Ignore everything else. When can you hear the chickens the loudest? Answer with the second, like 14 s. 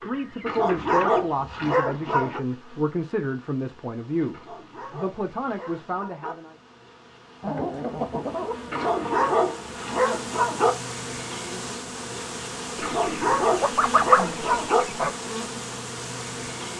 14 s.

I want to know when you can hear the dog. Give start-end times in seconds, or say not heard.
0.5-2.4, 4.3-6.3, 8.7-10.8, 12.8-14.8.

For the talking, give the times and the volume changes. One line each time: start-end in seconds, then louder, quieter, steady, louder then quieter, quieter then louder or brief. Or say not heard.
0.0-6.5 steady.